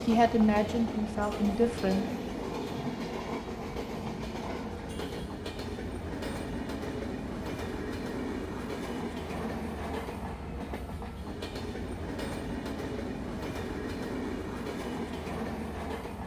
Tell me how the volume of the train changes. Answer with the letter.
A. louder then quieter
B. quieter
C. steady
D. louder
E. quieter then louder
C.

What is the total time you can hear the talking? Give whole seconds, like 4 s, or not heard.
2 s.